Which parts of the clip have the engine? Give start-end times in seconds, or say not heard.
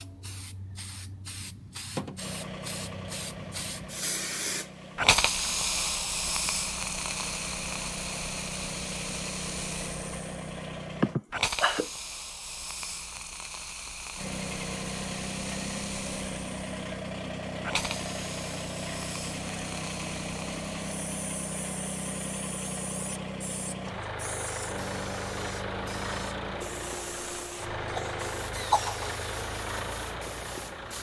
2.1-11.2, 14.2-30.9.